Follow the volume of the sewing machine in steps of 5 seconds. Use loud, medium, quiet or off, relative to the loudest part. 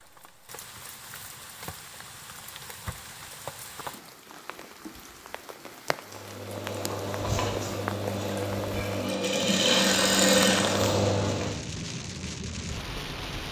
off, medium, loud.